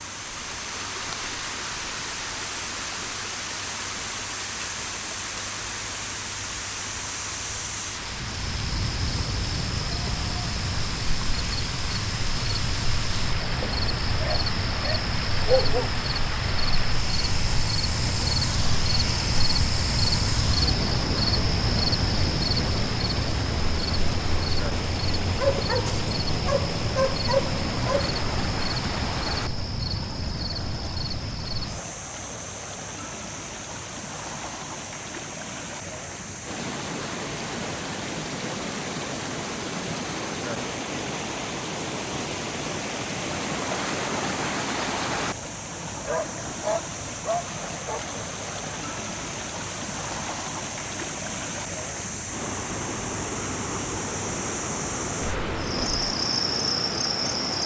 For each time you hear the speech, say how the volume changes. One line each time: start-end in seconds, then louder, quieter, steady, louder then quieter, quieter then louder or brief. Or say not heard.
not heard.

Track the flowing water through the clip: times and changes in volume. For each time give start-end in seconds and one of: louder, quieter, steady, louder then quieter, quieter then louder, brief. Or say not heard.
0.0-57.6 steady.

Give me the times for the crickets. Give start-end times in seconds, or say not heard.
0.0-57.6.